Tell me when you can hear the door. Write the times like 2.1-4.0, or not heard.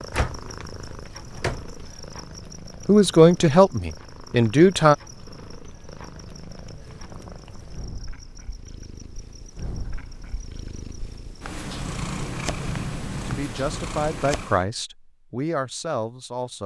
0.1-1.6, 11.7-13.4.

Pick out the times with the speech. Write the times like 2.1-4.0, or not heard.
2.9-5.0, 13.2-16.6.